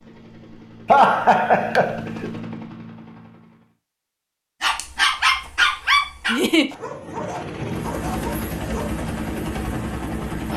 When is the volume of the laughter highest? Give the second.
1 s.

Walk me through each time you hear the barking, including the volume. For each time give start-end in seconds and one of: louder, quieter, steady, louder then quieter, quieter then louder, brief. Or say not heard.
4.6-9.1 quieter.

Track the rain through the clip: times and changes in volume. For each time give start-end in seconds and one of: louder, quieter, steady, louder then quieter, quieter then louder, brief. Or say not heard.
not heard.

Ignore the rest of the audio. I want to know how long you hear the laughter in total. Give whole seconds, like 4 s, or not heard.
2 s.